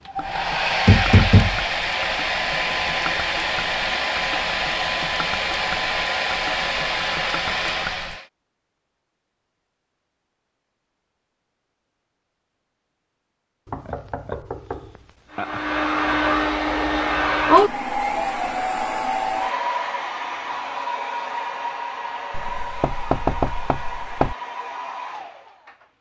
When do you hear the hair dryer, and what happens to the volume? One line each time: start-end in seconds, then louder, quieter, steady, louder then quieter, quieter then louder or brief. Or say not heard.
0.1-8.2 steady
15.3-25.9 quieter.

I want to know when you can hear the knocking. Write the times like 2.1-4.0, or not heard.
0.8-1.6, 13.7-15.6, 22.3-24.4.